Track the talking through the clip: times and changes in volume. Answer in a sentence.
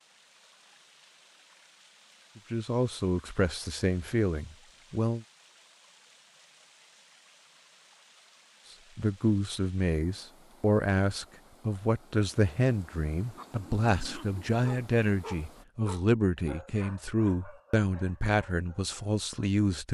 The talking can be heard briefly from 2.4 to 5.2 s; and from 8.9 to 19.8 s, at a steady volume.